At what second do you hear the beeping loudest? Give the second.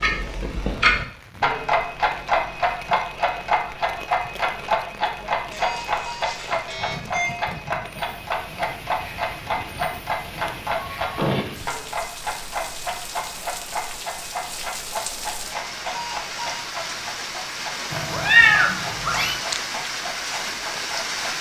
7 s.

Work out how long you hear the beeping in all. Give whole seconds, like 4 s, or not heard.
3 s.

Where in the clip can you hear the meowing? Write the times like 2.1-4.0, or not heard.
17.9-19.4.